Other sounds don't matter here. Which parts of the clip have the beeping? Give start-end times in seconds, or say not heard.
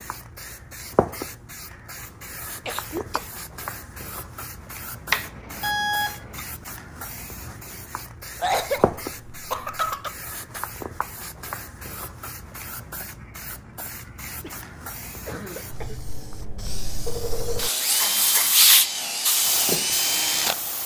5.1-6.5.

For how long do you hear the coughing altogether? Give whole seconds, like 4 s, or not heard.
4 s.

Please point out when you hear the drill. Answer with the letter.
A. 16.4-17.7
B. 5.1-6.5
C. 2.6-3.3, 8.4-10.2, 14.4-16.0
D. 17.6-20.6
D.